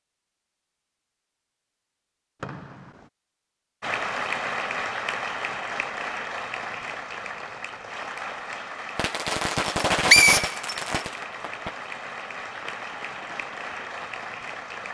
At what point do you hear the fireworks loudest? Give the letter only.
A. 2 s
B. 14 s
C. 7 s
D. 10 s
D.